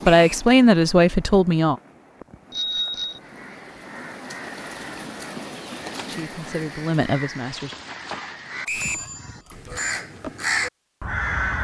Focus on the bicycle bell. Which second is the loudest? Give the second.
3 s.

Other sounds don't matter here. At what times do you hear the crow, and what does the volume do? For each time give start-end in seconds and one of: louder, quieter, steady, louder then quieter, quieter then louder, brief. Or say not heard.
3.1-11.5 louder.